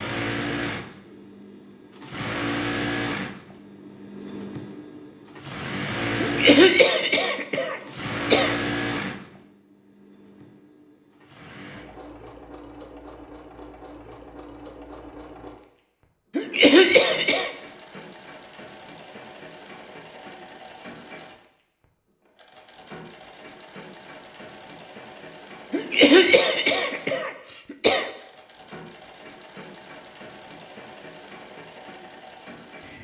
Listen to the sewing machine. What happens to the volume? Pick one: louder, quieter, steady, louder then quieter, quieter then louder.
quieter.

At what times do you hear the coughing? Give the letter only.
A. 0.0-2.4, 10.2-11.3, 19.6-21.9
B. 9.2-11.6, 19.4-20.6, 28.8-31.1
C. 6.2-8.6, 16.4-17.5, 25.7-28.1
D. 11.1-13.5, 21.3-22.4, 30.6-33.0
C.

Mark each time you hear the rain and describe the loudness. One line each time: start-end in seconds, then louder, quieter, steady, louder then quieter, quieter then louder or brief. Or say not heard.
not heard.